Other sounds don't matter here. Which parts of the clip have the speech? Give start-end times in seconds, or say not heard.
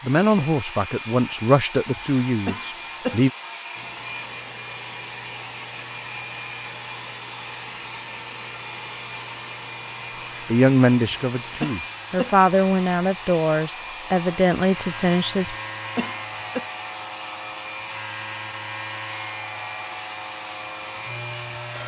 0.0-3.3, 10.4-15.6.